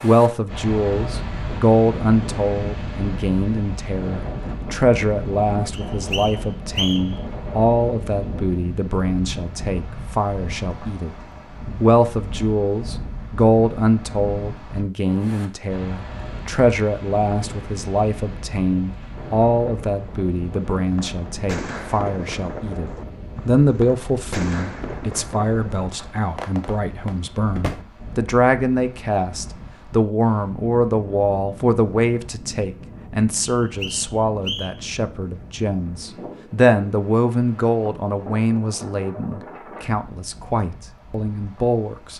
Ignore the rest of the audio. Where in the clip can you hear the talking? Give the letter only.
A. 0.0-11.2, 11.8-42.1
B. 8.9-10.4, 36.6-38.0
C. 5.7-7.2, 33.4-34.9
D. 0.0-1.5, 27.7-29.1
A.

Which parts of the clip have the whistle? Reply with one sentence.
You can hear the whistle from 5.7 to 7.2 s and from 33.4 to 34.9 s.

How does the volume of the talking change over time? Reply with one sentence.
The loudness of the talking stays about the same.